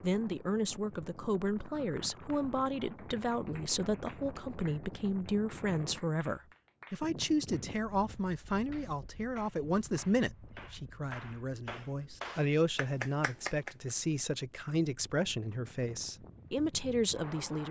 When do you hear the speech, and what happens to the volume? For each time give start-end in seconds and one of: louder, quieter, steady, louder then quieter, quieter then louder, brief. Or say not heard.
0.0-17.6 steady.